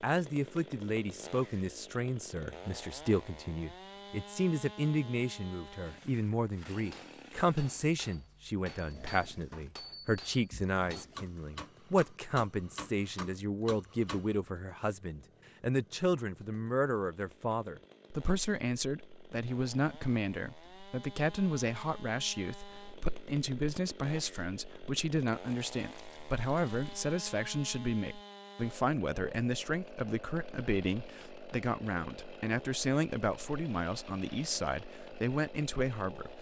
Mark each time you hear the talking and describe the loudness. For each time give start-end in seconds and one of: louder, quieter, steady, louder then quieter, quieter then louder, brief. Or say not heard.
0.0-36.3 steady.